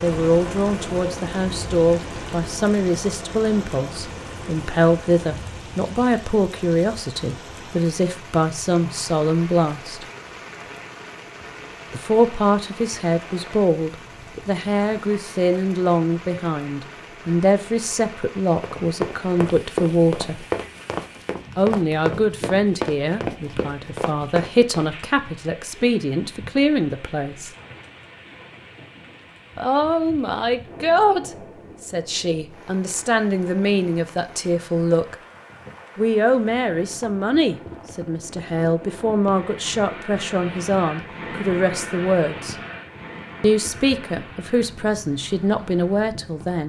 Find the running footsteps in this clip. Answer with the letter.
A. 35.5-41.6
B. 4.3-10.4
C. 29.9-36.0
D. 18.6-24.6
D.